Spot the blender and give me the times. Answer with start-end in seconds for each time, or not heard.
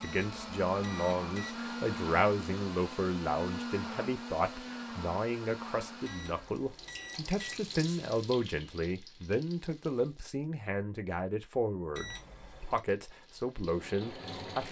0.0-6.6.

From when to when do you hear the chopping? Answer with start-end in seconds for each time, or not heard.
not heard.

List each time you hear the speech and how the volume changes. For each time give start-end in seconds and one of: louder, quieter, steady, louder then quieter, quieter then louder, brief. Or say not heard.
0.0-14.6 steady.